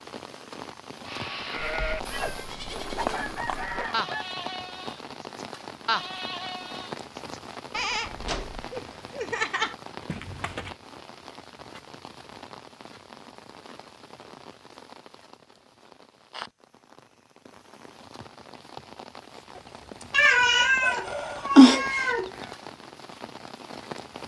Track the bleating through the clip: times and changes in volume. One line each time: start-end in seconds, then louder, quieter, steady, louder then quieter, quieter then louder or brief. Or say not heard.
1.1-10.8 steady.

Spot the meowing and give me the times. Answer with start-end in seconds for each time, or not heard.
1.6-3.9, 20.1-22.3.